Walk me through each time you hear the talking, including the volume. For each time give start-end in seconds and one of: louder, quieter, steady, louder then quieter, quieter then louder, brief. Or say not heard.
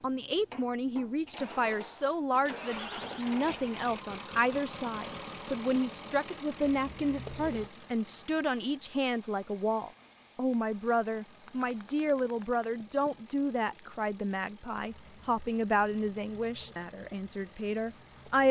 0.0-18.4 steady.